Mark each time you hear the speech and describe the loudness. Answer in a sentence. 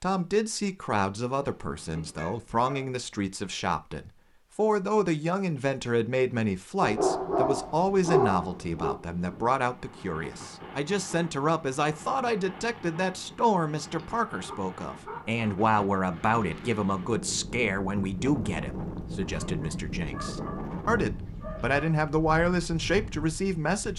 You can hear the speech from 0.0 to 23.9 s, at a steady volume.